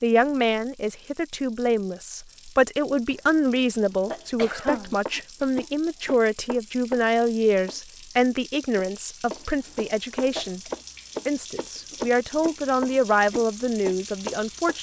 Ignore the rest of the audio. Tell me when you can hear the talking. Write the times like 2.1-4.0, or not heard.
0.0-10.6, 11.2-14.7.